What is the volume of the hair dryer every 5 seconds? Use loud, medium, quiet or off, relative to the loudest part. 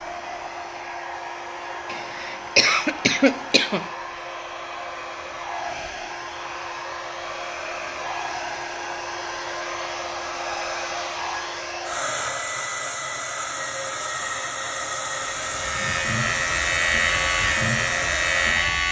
medium, loud, loud, loud.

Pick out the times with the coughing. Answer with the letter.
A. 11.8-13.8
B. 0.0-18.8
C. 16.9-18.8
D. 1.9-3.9
D.